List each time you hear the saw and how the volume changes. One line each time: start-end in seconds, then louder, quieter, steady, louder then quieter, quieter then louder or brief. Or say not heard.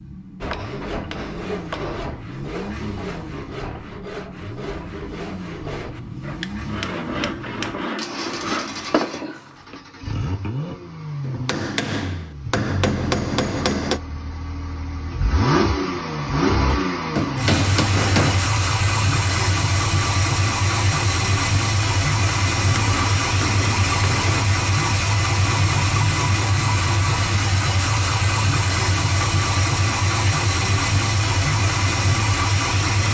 0.4-9.8 louder.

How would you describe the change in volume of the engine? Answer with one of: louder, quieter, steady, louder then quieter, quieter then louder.
louder.